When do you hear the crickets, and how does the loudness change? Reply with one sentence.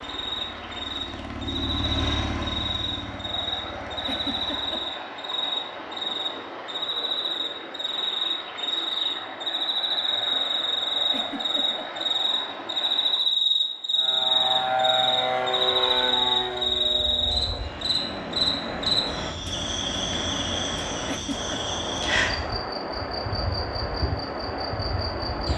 The crickets can be heard from 0.0 to 25.5 s, getting louder then quieter.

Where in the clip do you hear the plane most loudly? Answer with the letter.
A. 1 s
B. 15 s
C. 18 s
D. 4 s
B.